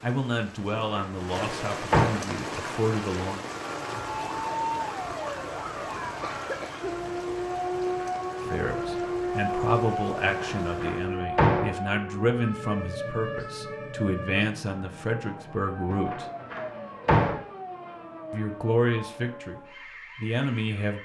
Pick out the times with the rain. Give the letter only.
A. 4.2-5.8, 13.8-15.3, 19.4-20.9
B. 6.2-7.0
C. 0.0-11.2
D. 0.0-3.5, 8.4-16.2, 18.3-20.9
C.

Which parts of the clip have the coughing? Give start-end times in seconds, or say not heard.
6.2-7.0.